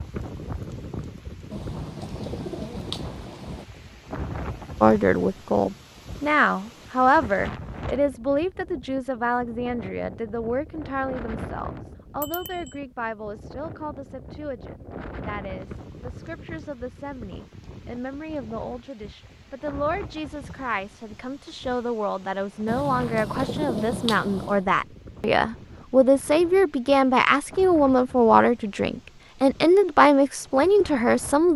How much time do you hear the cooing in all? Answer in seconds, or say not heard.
4 s.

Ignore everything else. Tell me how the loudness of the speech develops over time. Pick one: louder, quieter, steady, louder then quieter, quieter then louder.
quieter then louder.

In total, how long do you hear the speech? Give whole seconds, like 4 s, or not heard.
27 s.